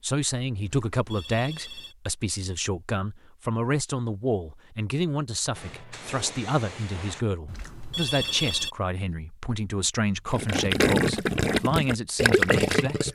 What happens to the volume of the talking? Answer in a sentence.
The volume of the talking stays about the same.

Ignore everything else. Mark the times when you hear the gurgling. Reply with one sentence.
You can hear the gurgling from 10.3 to 13.0 s.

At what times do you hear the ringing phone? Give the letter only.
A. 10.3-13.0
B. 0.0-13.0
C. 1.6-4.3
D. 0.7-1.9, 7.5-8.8
D.